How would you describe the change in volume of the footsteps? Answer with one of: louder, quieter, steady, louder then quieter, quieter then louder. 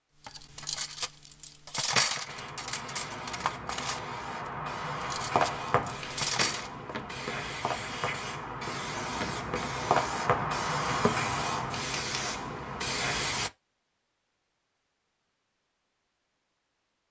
quieter then louder.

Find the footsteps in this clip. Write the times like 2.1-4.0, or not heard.
5.3-11.3.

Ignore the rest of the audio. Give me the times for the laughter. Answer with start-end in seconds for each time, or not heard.
not heard.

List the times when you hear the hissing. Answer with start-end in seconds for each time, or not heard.
2.2-13.5.